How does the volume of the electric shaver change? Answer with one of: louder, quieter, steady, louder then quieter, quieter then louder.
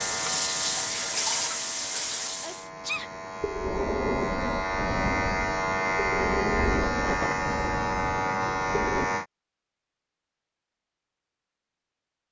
louder.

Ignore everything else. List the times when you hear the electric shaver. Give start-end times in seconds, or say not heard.
0.0-9.2.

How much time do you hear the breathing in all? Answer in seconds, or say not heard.
6 s.